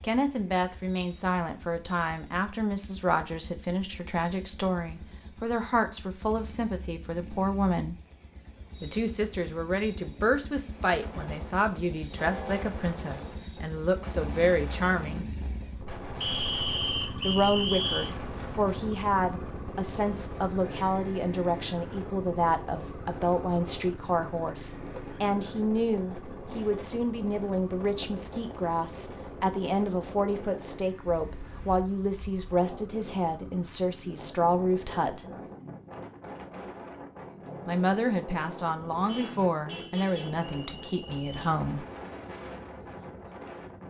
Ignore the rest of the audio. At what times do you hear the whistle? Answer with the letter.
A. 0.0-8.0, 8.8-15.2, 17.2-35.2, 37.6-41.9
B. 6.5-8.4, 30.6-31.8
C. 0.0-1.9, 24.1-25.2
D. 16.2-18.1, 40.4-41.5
D.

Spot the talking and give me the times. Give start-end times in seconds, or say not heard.
0.0-8.0, 8.8-15.2, 17.2-35.2, 37.6-41.9.